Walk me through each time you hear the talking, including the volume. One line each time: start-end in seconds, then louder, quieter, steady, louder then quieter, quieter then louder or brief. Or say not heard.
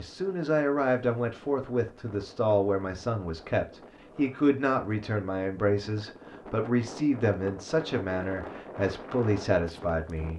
0.0-10.3 steady.